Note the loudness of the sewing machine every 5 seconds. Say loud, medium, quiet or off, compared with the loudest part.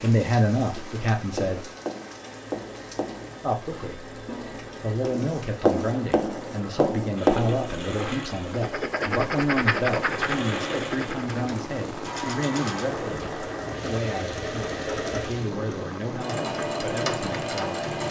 quiet, medium, loud, loud.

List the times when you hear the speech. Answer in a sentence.
You can hear the speech from 0.0 to 1.6 s, from 3.4 to 4.0 s and from 4.8 to 17.9 s.